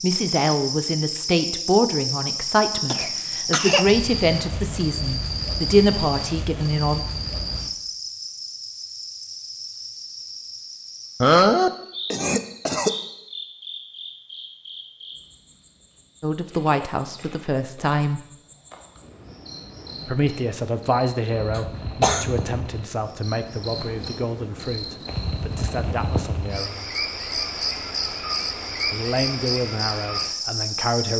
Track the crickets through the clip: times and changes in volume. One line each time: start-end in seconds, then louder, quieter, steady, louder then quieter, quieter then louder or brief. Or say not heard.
0.0-31.1 quieter then louder.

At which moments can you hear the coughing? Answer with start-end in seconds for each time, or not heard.
2.9-3.9, 11.2-12.9, 21.6-22.2.